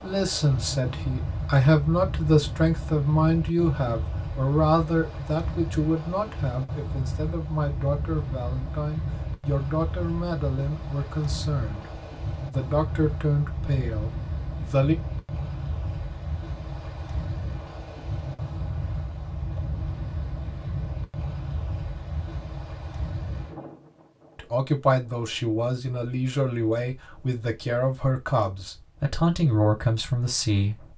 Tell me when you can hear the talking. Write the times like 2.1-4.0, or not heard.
0.0-14.9, 24.4-30.8.